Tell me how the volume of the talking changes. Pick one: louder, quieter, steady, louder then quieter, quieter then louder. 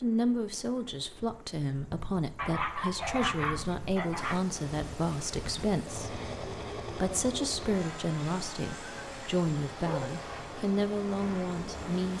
steady.